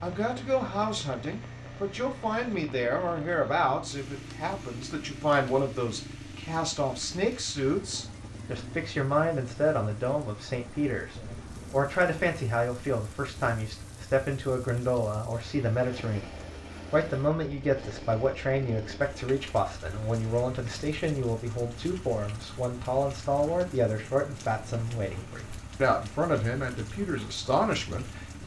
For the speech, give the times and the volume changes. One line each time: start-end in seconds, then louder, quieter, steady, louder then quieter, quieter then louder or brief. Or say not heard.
0.0-16.3 steady
16.9-28.4 steady.